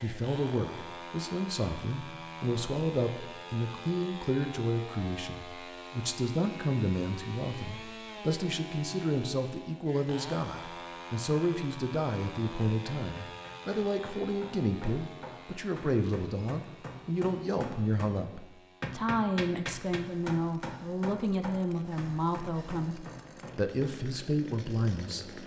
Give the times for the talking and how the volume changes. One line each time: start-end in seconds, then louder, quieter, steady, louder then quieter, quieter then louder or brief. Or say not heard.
0.0-25.4 steady.